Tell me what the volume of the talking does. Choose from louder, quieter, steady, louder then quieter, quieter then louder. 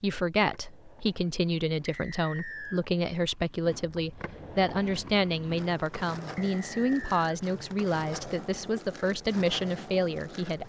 steady.